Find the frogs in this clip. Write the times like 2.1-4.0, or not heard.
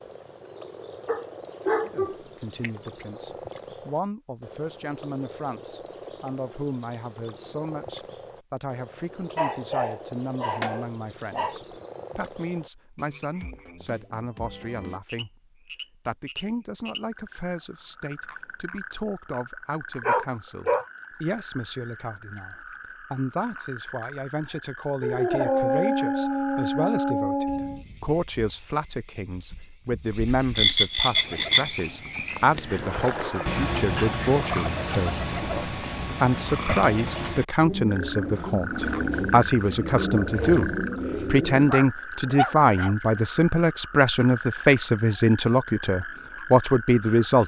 0.0-47.4.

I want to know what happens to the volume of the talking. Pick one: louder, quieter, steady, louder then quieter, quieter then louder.
louder.